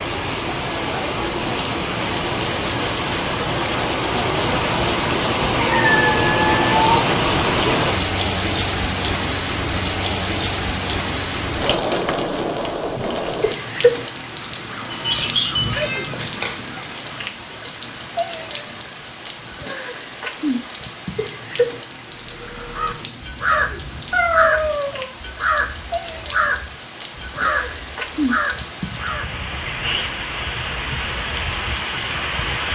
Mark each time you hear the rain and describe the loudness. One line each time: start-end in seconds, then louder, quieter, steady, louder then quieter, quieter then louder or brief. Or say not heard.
0.0-32.7 quieter.